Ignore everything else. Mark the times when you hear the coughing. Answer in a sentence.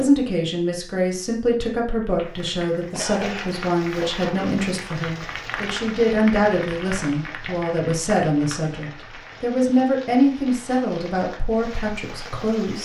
You can hear the coughing from 2.8 to 4.6 s.